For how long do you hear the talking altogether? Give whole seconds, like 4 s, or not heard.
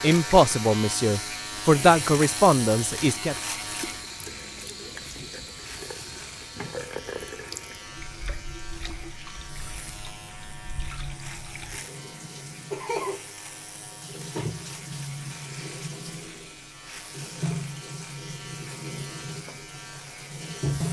3 s.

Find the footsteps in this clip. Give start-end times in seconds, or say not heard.
not heard.